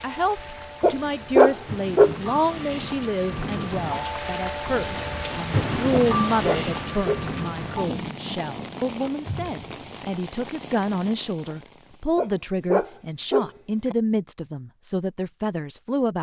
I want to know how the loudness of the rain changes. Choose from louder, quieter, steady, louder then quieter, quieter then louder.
louder then quieter.